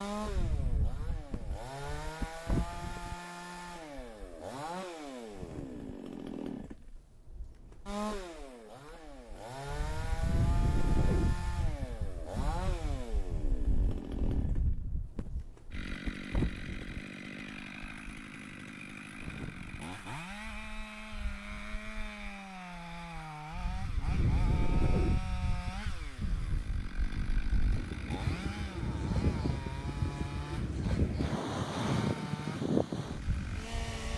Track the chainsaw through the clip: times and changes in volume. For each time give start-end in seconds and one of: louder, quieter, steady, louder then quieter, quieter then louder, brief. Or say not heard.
0.0-34.1 steady.